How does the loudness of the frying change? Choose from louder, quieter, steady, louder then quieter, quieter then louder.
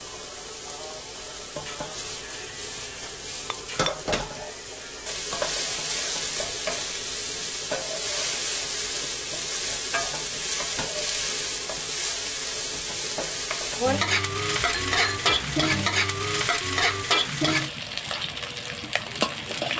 louder.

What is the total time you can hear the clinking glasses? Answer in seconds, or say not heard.
2 s.